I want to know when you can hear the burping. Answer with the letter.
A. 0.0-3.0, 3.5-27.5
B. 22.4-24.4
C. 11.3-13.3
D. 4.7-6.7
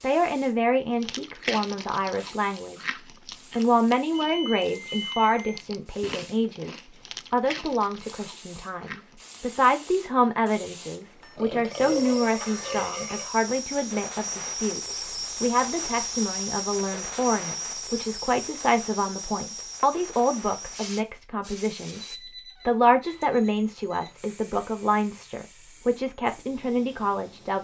C.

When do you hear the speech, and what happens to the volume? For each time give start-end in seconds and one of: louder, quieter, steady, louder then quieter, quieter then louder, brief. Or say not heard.
0.0-3.0 brief
3.5-27.5 steady.